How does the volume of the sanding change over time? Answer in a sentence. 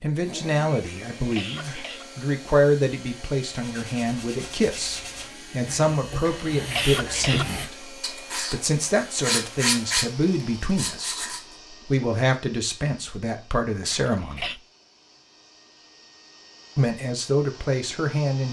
The loudness of the sanding goes up.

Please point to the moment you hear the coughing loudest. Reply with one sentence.
The loudest moment of the coughing is at 7 seconds.